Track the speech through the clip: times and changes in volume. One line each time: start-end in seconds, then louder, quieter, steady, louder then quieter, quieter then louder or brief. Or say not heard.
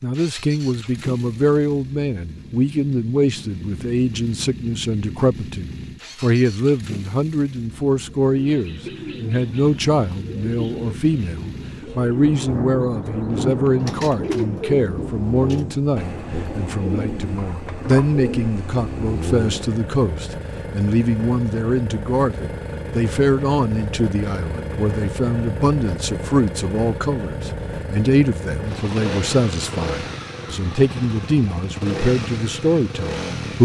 0.0-33.6 steady.